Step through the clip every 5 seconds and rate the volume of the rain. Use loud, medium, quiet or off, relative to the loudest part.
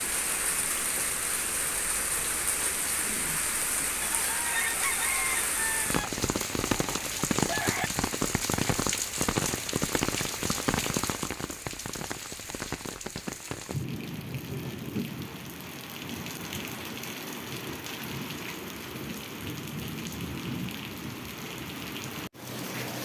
loud, loud, loud, medium, medium.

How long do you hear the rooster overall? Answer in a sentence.
The rooster can be heard for 4 seconds in total.